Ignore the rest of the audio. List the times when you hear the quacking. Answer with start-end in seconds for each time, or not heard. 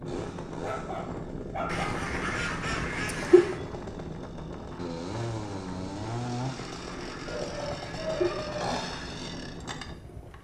1.7-3.5, 6.5-8.3.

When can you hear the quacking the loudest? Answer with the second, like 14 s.
3 s.